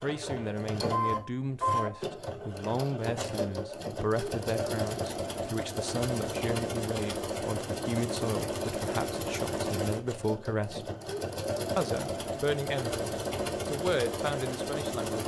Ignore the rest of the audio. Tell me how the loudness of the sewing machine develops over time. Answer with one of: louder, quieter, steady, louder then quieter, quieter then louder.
steady.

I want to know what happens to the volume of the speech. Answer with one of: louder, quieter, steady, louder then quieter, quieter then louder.
steady.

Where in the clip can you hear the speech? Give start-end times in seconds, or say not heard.
0.0-10.9, 11.8-15.2.